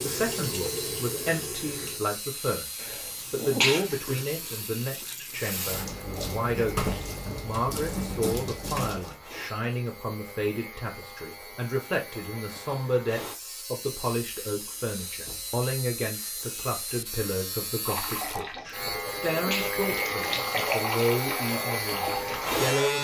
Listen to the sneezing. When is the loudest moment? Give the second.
4 s.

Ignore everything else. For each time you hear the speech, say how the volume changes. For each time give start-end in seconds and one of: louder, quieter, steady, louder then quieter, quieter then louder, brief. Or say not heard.
0.0-22.9 steady.